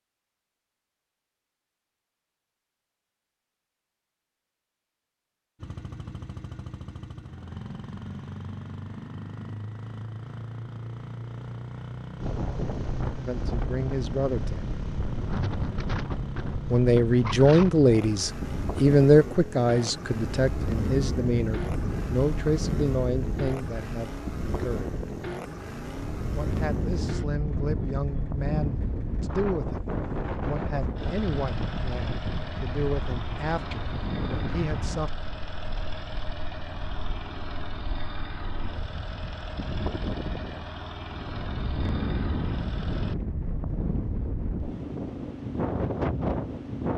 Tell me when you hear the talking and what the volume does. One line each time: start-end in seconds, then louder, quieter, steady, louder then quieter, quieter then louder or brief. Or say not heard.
13.2-14.8 brief
16.7-24.9 quieter
26.4-35.1 steady.